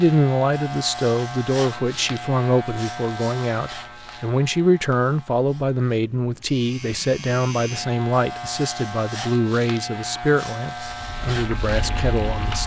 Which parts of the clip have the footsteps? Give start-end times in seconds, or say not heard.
not heard.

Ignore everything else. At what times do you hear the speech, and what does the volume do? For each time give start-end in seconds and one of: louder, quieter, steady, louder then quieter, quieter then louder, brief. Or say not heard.
0.0-12.6 steady.